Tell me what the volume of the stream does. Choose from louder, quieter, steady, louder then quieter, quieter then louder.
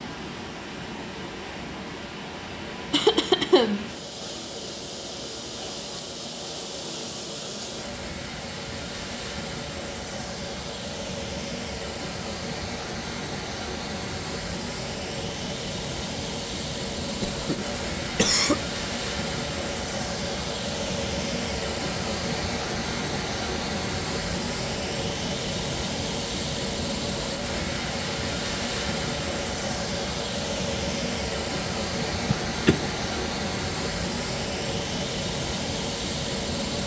louder.